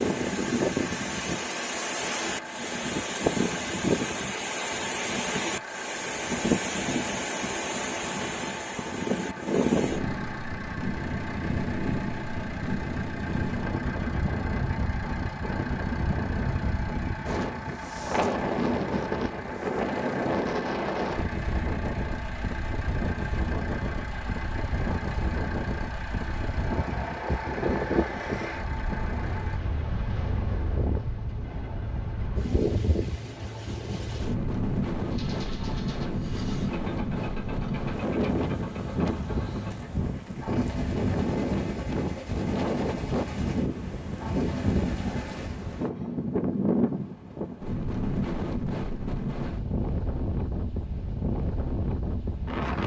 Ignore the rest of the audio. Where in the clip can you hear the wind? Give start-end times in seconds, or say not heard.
0.0-52.8.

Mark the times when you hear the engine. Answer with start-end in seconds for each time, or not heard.
0.0-45.5.